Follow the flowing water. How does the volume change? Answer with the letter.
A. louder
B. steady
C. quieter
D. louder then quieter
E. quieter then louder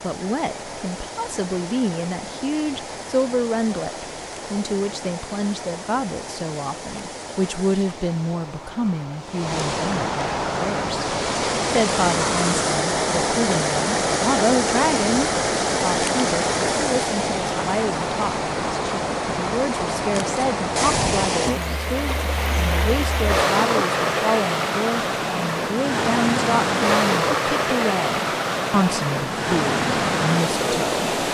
A.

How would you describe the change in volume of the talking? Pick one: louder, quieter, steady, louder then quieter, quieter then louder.
steady.